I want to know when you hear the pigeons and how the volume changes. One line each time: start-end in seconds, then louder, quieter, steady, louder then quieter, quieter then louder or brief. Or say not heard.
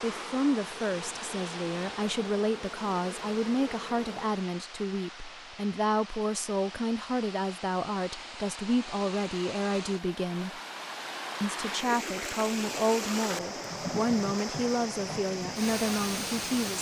not heard.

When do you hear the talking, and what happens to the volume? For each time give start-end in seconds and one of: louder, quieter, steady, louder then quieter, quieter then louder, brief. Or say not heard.
0.0-10.6 steady
11.4-16.7 steady.